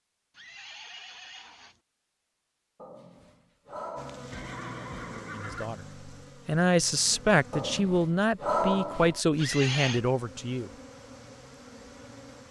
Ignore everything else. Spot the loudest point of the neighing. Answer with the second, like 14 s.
10 s.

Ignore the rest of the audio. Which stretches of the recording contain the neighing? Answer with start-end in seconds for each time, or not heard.
0.3-1.8, 4.3-5.7, 9.3-10.0.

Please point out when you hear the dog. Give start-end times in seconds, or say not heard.
2.8-4.5, 7.5-9.2.